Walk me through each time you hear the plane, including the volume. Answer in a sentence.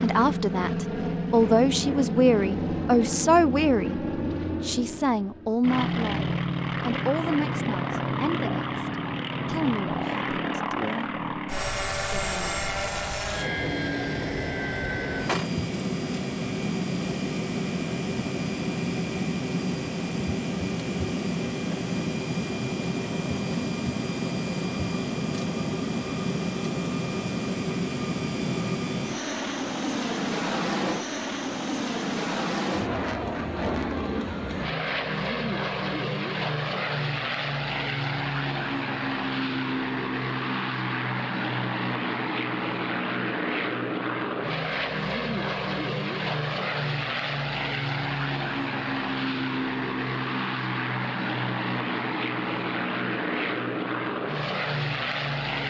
You can hear the plane from 0.0 to 55.6 s, at a steady volume.